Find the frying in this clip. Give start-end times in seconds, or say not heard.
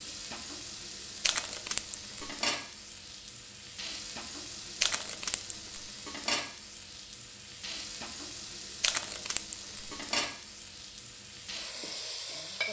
0.0-12.6.